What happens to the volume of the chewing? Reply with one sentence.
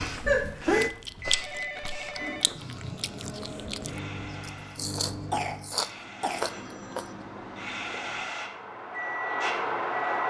The volume of the chewing goes down, then up.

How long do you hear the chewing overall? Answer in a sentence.
The chewing can be heard for 7 seconds in total.